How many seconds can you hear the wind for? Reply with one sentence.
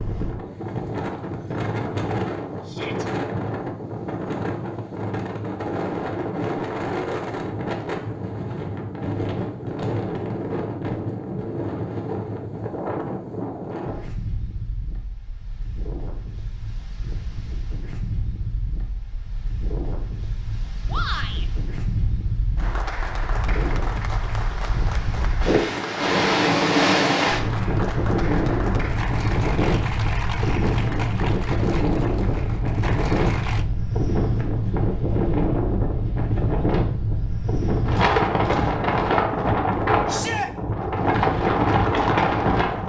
The wind can be heard for 43 seconds in total.